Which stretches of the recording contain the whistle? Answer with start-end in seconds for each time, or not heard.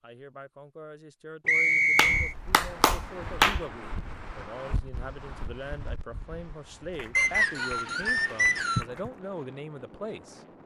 1.4-2.4, 7.2-8.8.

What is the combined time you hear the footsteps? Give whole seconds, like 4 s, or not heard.
not heard.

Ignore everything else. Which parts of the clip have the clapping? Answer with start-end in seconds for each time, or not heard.
1.9-3.6, 6.9-9.2.